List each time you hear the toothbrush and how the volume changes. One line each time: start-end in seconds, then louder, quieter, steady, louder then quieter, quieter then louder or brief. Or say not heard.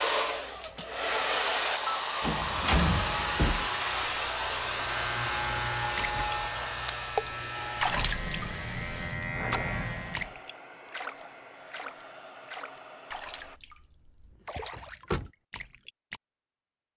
not heard.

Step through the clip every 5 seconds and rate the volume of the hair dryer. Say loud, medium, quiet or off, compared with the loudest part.
loud, medium, quiet, off.